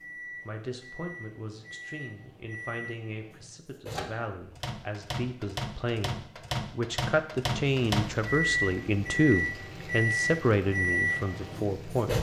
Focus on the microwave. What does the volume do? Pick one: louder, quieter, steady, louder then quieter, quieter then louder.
louder.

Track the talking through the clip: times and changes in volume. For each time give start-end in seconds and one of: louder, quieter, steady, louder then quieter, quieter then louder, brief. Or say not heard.
0.5-12.1 louder.